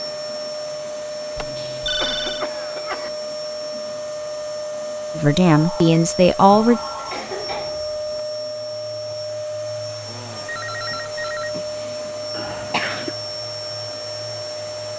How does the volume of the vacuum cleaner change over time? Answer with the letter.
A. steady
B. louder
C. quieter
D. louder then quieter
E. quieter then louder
A.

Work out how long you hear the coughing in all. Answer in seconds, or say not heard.
4 s.